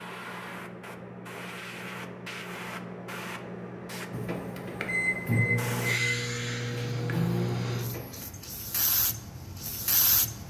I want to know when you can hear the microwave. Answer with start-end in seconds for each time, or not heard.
4.1-8.2.